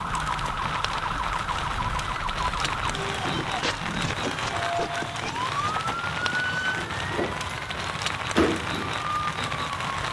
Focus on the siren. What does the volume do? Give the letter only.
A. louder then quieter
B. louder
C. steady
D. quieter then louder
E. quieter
C.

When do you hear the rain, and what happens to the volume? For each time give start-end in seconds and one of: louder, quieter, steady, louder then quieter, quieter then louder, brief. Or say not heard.
0.0-10.0 steady.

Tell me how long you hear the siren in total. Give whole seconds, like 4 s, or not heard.
10 s.